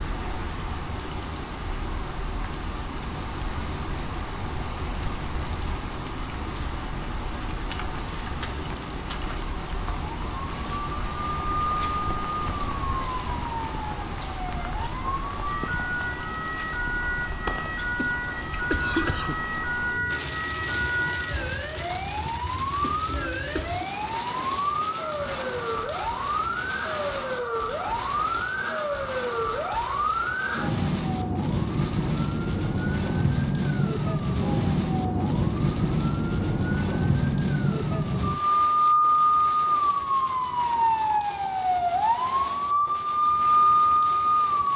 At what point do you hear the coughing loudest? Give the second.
19 s.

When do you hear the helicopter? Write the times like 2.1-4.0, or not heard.
not heard.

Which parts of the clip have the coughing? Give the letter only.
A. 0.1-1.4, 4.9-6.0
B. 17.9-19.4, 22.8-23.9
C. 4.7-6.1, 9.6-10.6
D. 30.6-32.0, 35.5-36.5
B.